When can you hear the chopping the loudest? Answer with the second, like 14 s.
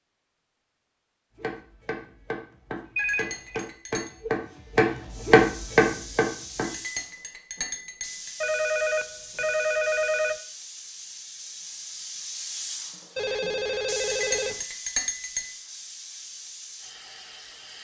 5 s.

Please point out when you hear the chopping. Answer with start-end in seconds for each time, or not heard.
1.4-6.8.